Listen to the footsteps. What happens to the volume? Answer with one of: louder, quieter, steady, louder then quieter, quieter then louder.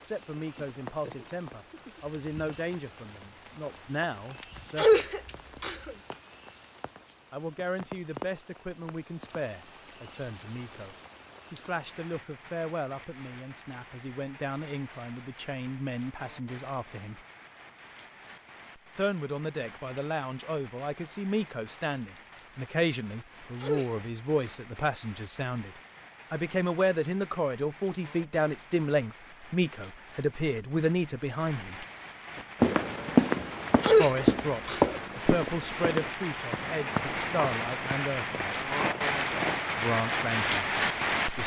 quieter.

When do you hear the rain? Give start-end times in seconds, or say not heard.
0.0-41.4.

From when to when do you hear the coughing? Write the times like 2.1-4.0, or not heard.
4.8-6.0, 23.6-24.6, 33.8-35.0.